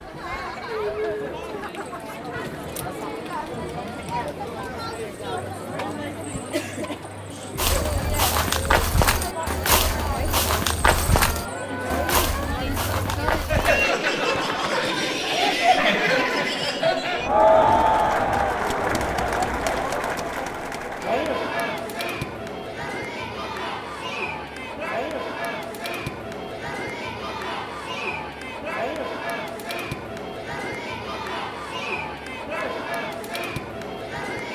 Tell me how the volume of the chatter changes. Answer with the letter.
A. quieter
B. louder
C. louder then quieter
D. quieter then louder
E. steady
C.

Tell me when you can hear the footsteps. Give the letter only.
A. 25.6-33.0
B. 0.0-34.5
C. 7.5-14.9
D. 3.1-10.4
C.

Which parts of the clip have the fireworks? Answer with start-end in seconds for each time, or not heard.
not heard.